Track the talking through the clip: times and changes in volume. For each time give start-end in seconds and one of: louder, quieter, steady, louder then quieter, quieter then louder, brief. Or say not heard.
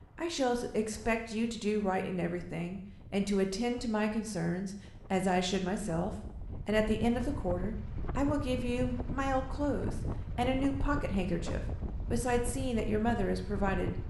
0.1-13.9 steady.